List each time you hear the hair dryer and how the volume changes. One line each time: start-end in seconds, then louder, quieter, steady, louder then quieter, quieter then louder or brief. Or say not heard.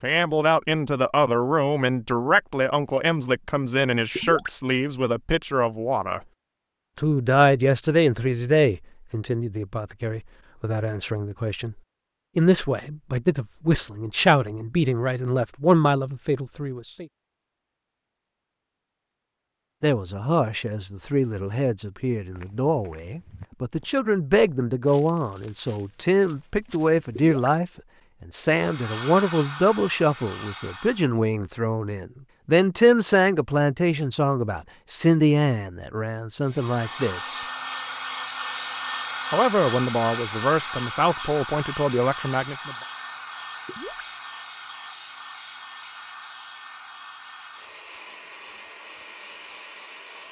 28.5-31.1 brief
36.5-50.2 quieter.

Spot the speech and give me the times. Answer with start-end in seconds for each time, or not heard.
0.0-6.2, 7.0-11.8, 12.3-17.1, 19.8-37.4, 39.3-42.8.